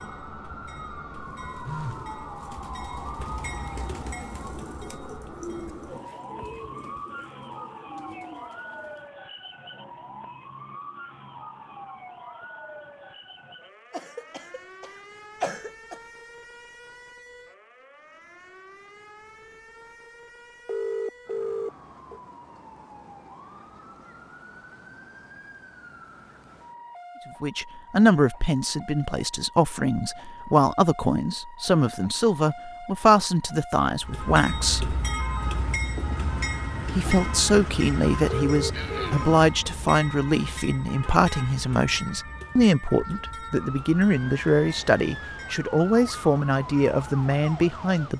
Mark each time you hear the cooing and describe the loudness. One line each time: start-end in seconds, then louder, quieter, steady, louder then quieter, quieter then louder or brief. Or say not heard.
1.4-9.1 louder then quieter.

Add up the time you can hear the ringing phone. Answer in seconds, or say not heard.
3 s.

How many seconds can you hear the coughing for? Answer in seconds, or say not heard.
3 s.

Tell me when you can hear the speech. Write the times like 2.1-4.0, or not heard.
27.4-35.0, 36.9-48.1.